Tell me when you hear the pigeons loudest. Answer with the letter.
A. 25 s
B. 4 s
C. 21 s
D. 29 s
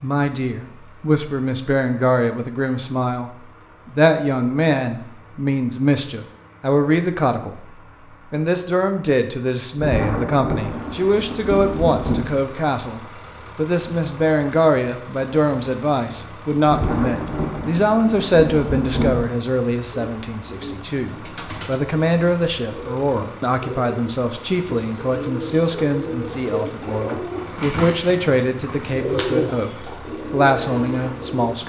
D.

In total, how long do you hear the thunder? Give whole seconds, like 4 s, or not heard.
5 s.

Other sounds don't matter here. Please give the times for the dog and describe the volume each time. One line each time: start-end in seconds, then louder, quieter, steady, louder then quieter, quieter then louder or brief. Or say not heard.
not heard.